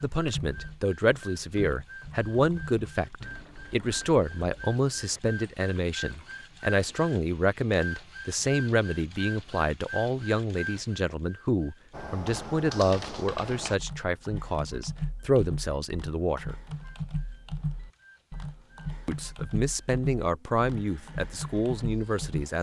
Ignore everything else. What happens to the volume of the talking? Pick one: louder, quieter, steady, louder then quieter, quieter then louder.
steady.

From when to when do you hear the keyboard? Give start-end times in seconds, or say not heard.
0.0-7.0, 11.9-22.4.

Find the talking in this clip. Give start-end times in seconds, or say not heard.
0.0-16.6, 19.1-22.5.